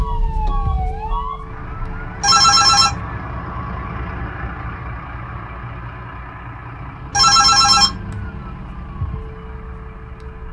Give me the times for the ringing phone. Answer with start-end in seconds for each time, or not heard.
2.2-2.9, 7.1-8.0.